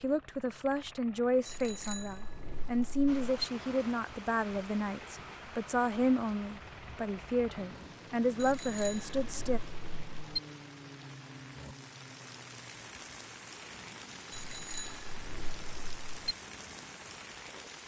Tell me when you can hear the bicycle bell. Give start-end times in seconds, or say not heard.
1.4-3.5, 8.4-10.4, 14.3-16.3.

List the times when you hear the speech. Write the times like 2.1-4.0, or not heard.
0.0-9.6.